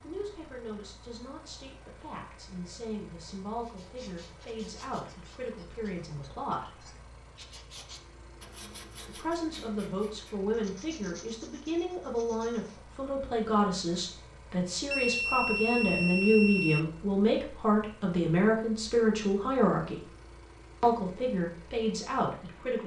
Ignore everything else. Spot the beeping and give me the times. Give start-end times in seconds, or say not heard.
14.9-16.8.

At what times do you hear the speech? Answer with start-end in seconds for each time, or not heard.
0.0-6.8, 9.1-20.1, 20.8-22.8.